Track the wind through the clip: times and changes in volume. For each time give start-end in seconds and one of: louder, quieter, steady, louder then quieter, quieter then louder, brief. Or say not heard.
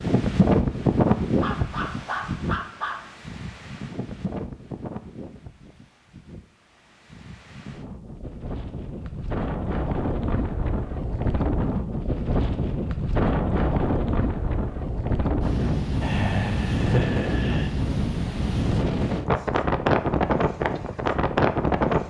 0.0-22.0 quieter then louder.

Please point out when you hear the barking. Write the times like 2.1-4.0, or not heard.
1.4-3.0.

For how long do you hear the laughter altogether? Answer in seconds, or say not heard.
2 s.